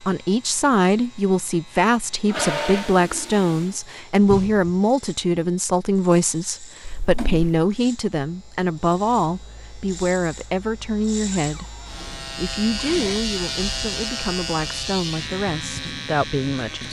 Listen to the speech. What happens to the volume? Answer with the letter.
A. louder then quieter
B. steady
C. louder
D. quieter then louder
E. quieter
E.